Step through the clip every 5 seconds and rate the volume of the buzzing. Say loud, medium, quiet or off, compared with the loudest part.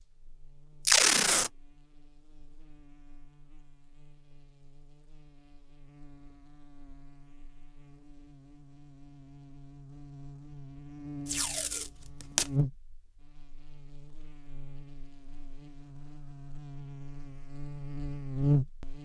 quiet, quiet, medium, loud.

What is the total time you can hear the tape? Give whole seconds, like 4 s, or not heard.
2 s.